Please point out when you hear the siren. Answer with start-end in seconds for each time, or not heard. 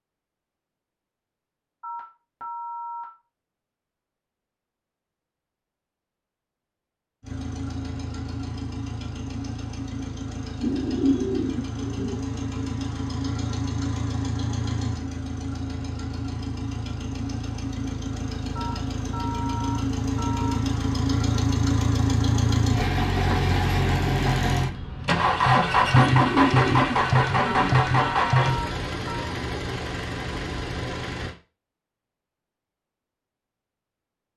not heard.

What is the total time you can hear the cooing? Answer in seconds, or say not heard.
4 s.